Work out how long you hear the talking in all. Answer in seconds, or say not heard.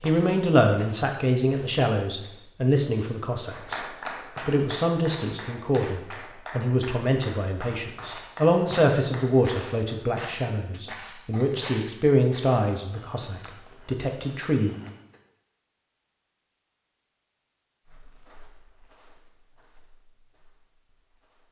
14 s.